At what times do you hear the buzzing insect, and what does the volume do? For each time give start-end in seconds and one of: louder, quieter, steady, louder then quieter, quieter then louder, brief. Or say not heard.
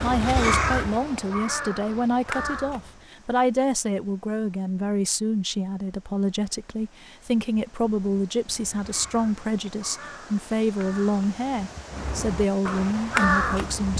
not heard.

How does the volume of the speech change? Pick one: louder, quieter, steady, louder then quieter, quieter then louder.
steady.